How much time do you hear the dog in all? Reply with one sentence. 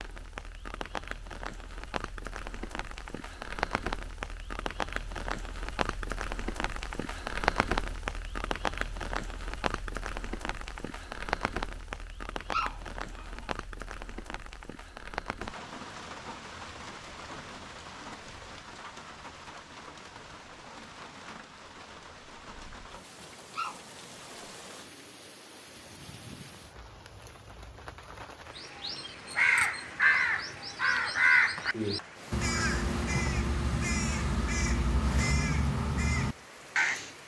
You can hear the dog for 2 seconds altogether.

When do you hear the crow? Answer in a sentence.
You can hear the crow from 28.6 to 37.1 s.